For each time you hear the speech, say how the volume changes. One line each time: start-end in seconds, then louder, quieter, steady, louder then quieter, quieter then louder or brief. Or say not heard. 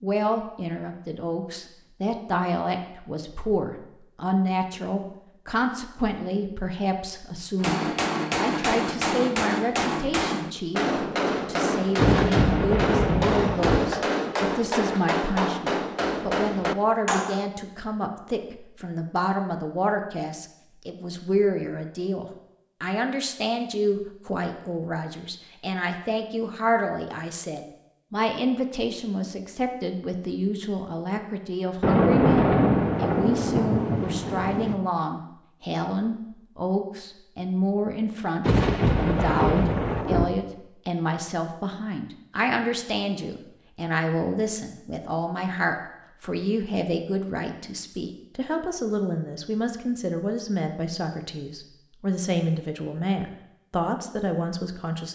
0.0-55.1 steady.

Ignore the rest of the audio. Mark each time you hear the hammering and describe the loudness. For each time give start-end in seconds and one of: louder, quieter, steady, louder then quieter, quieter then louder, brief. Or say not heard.
7.6-17.4 steady.